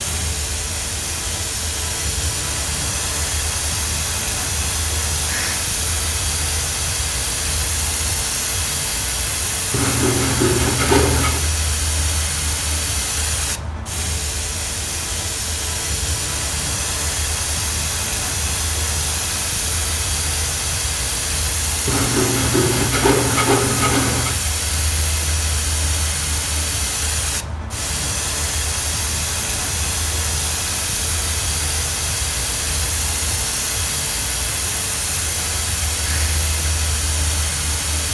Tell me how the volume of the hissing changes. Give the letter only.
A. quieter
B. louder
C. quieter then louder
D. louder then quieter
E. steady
E.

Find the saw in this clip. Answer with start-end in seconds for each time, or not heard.
9.7-11.4, 21.9-24.4.